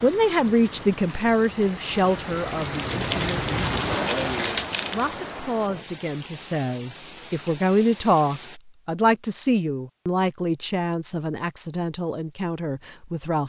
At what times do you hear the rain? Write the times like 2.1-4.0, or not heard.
0.0-8.6.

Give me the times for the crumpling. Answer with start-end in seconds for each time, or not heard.
2.9-5.3.